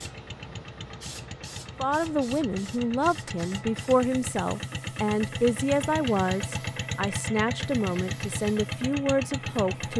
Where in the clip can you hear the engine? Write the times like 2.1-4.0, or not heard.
0.0-9.9.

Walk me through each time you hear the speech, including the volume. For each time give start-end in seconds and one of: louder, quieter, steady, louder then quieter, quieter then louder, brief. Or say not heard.
1.8-9.9 steady.